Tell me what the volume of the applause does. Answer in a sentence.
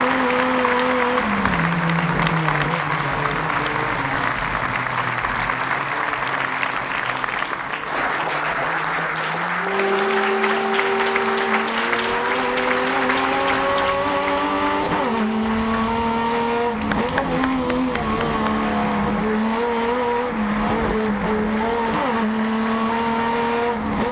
The loudness of the applause goes down.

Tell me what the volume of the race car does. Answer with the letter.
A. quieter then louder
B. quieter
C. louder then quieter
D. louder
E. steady
A.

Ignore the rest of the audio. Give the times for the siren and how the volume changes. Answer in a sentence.
You can hear the siren from 9.6 to 16.0 s, getting quieter.